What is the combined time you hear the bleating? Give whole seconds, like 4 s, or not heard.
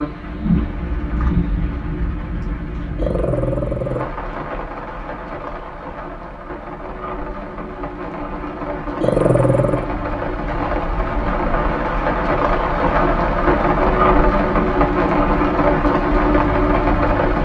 not heard.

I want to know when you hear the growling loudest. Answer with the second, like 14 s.
9 s.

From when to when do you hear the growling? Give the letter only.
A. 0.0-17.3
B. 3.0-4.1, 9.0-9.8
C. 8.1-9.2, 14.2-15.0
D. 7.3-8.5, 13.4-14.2
B.